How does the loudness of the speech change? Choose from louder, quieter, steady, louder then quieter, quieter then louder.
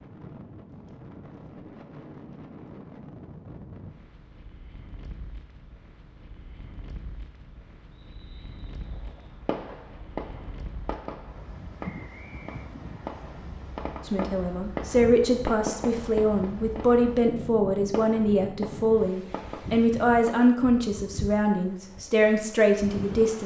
steady.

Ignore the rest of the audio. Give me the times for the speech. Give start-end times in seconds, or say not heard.
14.1-23.4.